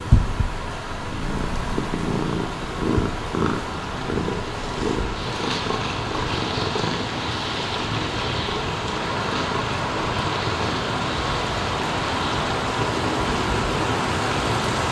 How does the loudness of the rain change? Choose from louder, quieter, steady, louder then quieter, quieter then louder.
louder.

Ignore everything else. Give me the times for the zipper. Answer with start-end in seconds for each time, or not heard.
not heard.